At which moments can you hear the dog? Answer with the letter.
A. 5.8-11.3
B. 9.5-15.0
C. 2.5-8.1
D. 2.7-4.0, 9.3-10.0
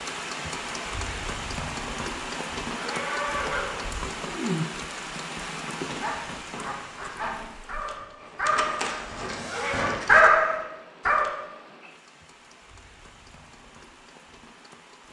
A.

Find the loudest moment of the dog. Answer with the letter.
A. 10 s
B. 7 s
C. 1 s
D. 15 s
A.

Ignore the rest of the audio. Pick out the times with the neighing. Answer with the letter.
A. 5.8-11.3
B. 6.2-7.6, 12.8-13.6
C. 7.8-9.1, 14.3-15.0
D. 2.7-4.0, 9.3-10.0
D.